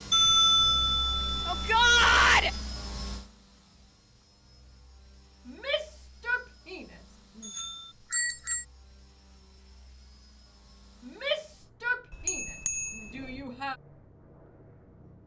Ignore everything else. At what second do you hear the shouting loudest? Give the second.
2 s.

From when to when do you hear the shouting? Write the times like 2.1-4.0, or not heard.
1.4-2.5, 5.5-6.8, 11.1-13.8.